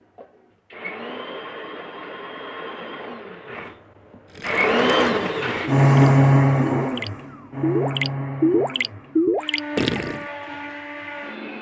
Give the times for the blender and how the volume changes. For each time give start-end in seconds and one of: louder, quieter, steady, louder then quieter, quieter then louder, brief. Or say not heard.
0.0-11.5 louder then quieter.